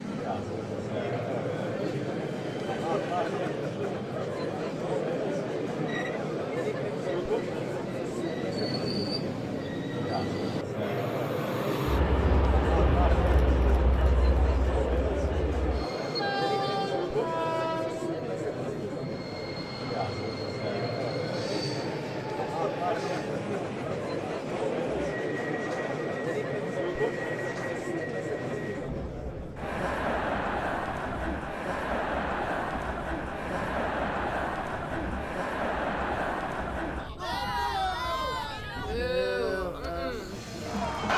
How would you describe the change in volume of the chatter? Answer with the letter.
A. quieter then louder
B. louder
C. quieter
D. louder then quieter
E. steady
E.